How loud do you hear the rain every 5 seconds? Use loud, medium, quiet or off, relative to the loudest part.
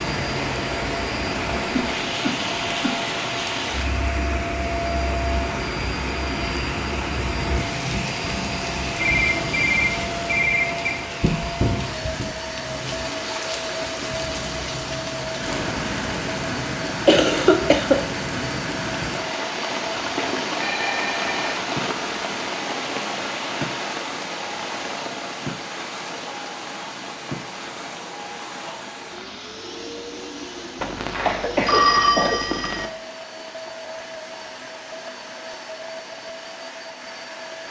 loud, loud, loud, loud, loud, medium, quiet, quiet.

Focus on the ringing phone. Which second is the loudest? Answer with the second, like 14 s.
32 s.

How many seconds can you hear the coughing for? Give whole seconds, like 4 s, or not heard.
4 s.